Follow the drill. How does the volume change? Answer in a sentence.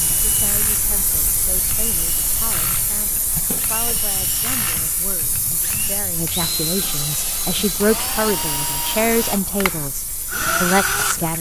The loudness of the drill goes up.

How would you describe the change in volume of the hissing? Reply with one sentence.
The volume of the hissing goes down.